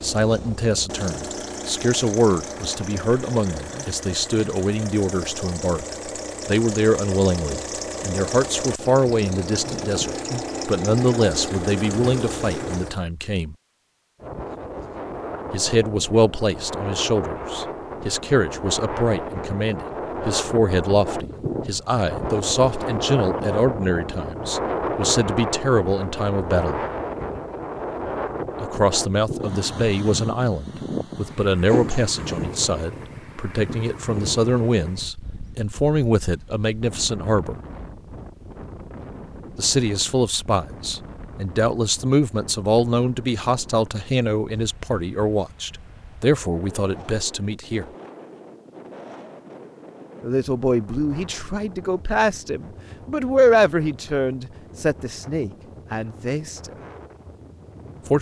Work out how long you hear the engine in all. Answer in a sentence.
The engine can be heard for 13 seconds in total.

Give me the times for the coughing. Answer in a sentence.
You can hear the coughing from 31.7 to 32.4 s.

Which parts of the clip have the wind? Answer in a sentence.
The wind can be heard from 14.2 to 58.1 s.